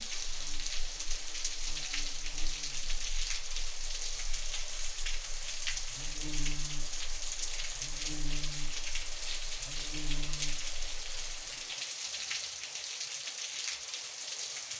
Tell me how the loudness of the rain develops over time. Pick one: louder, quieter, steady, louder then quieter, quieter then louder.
steady.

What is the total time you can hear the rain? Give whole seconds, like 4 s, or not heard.
15 s.